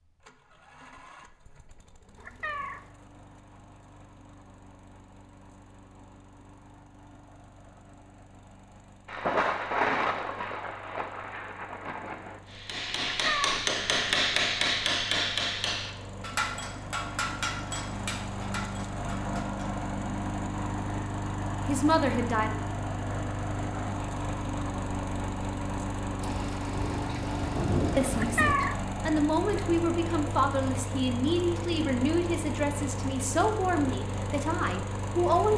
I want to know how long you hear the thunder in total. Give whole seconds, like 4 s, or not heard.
6 s.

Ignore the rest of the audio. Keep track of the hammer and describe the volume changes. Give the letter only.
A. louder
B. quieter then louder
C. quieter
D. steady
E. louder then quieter
C.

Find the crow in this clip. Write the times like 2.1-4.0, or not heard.
not heard.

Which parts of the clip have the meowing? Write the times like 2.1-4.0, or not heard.
2.1-2.8, 13.1-13.7, 28.1-28.8.